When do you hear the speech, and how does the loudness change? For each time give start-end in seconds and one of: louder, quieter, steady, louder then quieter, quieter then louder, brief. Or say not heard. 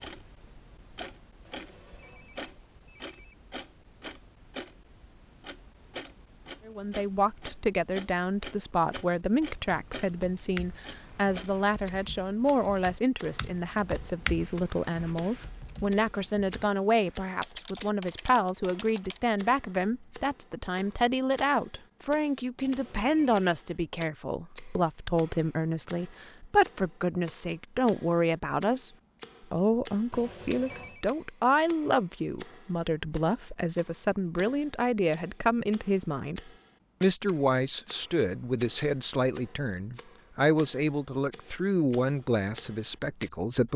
6.7-28.9 steady
29.5-43.7 steady.